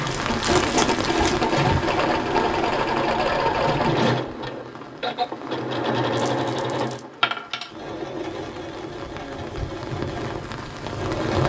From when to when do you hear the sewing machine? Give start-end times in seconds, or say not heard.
0.0-11.4.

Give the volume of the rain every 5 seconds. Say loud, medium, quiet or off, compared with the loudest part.
loud, medium, loud.